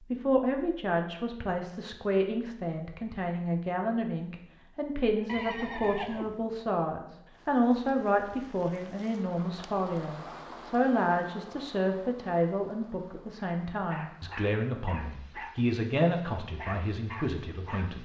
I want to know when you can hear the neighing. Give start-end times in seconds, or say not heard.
5.2-6.5.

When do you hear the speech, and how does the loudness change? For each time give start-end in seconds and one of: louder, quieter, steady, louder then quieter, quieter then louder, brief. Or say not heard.
0.0-18.0 steady.